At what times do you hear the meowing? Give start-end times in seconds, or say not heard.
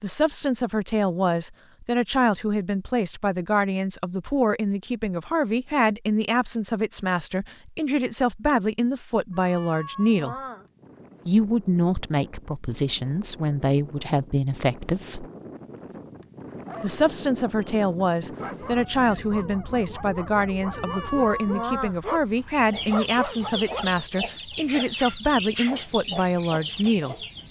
9.3-10.7, 20.6-21.9.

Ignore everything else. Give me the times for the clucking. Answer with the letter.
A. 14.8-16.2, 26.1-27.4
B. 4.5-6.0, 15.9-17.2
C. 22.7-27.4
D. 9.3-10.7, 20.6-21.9
C.